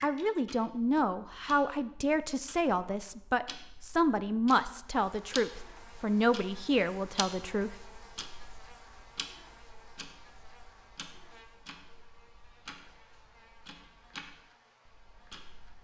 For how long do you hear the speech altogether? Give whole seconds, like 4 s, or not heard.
8 s.